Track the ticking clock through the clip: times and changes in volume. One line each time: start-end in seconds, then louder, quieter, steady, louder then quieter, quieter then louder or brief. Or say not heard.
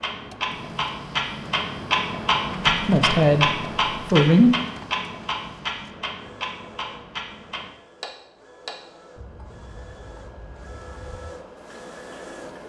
0.0-12.6 quieter.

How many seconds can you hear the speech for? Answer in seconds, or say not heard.
2 s.